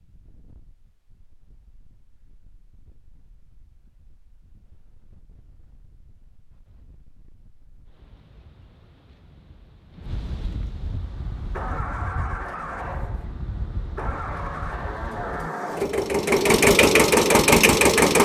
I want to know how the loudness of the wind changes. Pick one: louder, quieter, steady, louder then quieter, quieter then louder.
louder.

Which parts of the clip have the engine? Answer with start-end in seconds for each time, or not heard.
10.8-18.1.